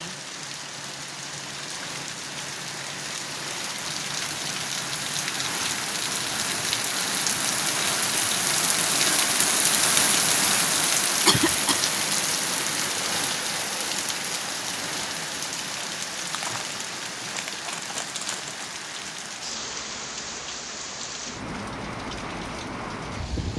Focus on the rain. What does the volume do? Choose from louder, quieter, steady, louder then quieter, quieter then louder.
louder then quieter.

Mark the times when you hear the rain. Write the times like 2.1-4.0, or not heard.
0.0-23.5.